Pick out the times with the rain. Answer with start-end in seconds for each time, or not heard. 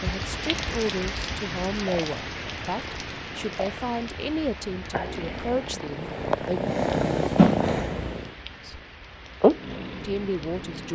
0.0-10.9.